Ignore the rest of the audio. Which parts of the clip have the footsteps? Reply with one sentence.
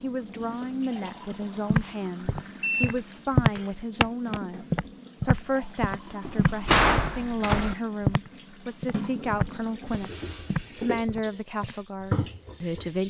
You can hear the footsteps from 1.6 to 11.8 s.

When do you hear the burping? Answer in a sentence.
You can't hear the burping here.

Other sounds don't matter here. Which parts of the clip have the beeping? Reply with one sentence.
You can hear the beeping from 2.6 to 3.7 s.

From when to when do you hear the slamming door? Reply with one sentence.
You can hear the slamming door from 6.2 to 7.8 s.